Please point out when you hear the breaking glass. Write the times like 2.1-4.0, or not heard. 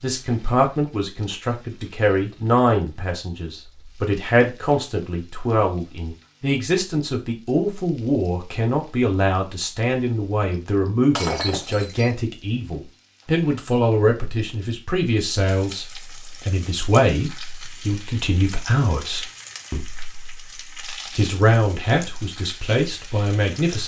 11.2-12.1.